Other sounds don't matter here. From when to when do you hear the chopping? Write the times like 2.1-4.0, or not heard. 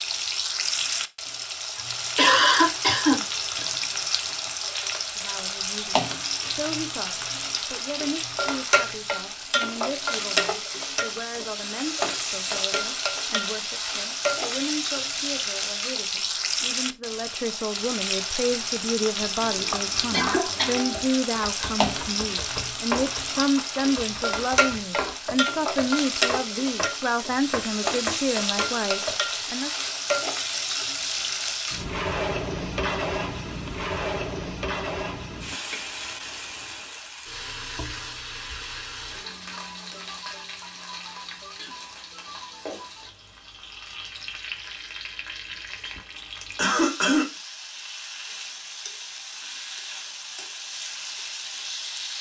19.4-29.6.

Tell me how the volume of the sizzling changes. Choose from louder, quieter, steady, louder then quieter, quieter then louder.
quieter.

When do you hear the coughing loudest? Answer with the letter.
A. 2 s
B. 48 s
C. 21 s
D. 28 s
A.